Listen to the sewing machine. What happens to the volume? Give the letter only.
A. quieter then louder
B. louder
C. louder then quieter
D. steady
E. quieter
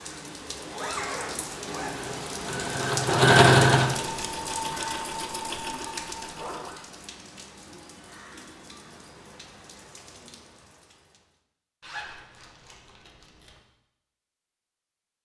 C.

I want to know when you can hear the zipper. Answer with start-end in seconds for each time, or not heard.
0.6-2.1, 6.3-6.8, 11.8-13.6.